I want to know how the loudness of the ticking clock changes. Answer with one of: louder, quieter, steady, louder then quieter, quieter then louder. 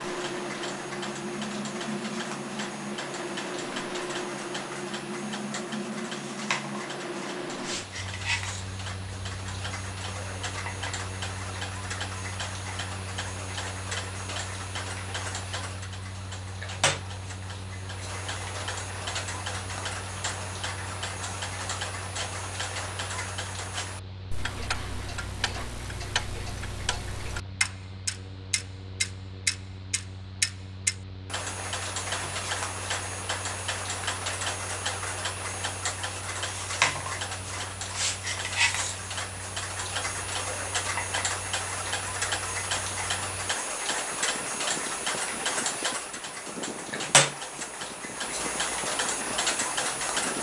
louder.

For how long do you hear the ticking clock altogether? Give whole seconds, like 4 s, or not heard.
50 s.